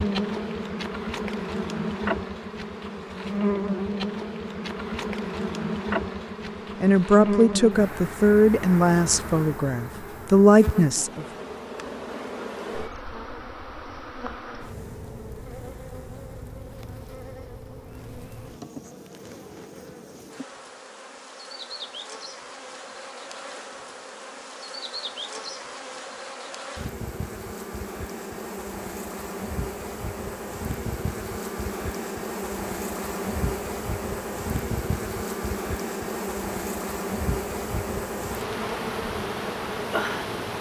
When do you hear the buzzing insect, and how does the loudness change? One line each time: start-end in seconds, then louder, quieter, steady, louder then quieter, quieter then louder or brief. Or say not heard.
0.0-40.5 quieter then louder.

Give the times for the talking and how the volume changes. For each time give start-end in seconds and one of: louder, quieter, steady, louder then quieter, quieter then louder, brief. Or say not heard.
6.8-11.2 quieter then louder.